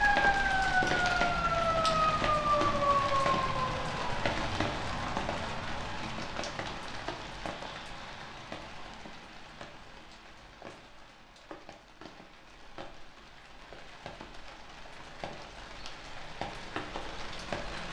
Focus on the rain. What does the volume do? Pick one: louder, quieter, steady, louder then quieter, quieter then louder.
quieter then louder.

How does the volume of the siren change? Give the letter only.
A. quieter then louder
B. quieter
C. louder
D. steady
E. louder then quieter
D.